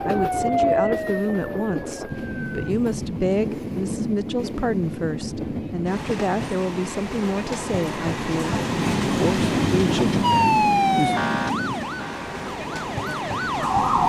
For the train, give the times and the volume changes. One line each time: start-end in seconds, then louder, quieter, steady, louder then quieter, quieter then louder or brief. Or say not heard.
0.0-14.0 louder then quieter.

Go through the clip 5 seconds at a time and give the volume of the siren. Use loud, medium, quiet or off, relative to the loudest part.
loud, off, loud.